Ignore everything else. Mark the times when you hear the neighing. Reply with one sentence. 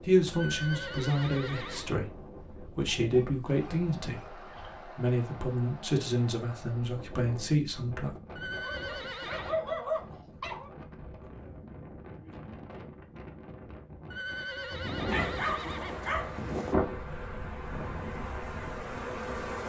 The neighing can be heard from 0.3 to 1.9 s, from 8.3 to 9.6 s and from 14.1 to 16.1 s.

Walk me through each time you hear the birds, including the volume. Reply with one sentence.
The birds can't be heard in this clip.